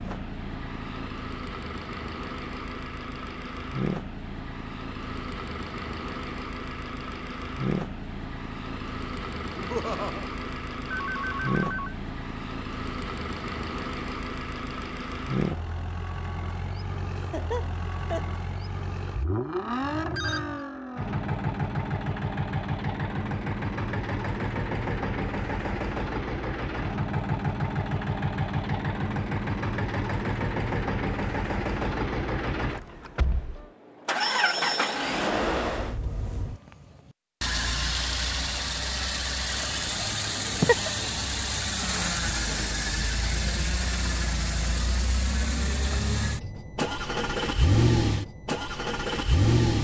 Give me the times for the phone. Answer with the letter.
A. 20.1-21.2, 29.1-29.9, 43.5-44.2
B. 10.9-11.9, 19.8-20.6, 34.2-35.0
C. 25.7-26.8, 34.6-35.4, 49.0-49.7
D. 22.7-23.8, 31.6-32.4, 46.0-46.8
B.